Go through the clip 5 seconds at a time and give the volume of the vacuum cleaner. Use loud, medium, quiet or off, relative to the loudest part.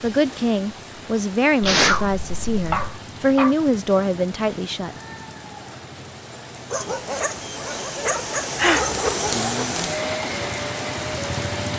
off, loud, loud.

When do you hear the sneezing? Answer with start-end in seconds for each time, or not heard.
1.6-3.0, 8.6-9.0.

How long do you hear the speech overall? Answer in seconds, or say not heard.
5 s.